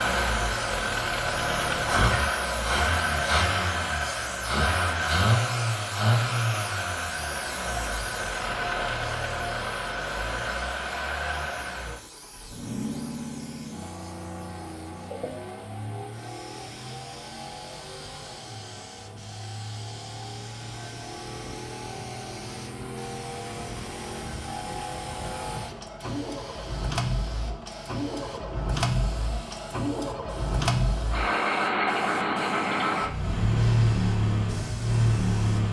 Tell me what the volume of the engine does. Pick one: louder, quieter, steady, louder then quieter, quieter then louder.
quieter then louder.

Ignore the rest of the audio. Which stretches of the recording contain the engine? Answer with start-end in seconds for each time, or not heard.
0.0-35.6.